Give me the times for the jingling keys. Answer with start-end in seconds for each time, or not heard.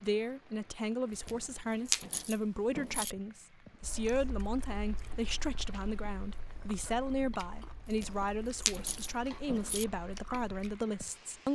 1.1-3.1, 7.8-9.8.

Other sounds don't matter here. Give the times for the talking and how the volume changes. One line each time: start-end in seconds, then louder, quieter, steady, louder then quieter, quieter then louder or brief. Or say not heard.
0.0-11.5 steady.